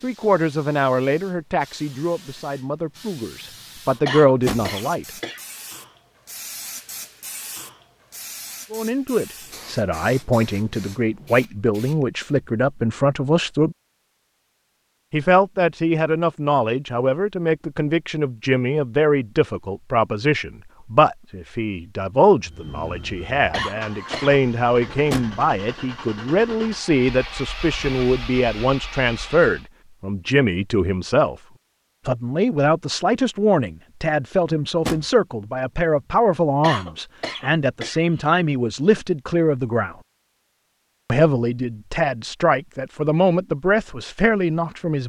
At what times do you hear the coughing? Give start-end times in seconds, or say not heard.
4.0-5.4, 23.5-24.4, 36.6-38.3.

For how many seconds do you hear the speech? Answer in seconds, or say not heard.
38 s.